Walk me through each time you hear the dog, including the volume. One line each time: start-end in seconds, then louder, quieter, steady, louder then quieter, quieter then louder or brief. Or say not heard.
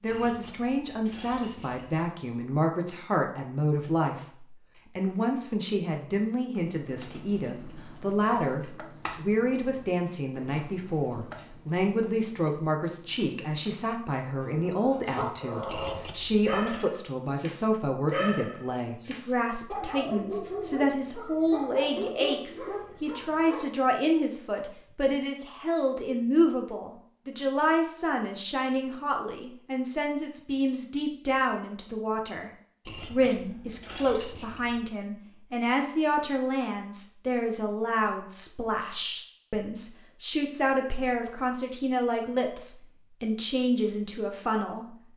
14.2-23.6 steady.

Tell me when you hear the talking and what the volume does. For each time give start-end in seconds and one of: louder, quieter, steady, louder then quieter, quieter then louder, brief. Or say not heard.
0.0-45.0 steady.